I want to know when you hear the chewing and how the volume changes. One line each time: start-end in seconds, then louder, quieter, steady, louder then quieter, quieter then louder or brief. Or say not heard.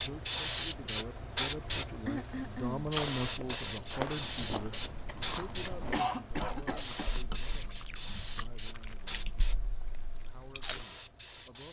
2.5-10.8 quieter.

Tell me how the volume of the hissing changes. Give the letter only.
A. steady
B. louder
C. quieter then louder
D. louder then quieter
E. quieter
E.